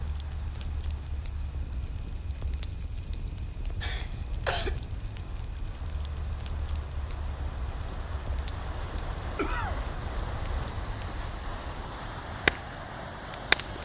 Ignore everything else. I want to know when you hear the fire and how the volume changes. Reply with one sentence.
You can hear the fire from 0.0 to 13.8 s, getting louder.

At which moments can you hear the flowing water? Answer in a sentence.
You can hear the flowing water from 0.0 to 13.8 s.